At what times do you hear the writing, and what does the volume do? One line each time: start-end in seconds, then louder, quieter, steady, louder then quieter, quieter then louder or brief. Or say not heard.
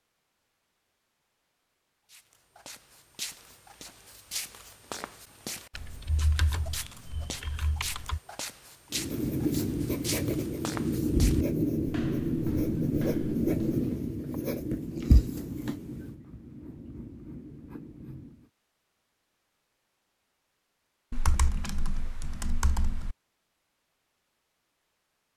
8.9-18.5 quieter.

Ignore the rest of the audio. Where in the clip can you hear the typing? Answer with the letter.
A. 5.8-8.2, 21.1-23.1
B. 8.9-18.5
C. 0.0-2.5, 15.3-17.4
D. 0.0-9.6
A.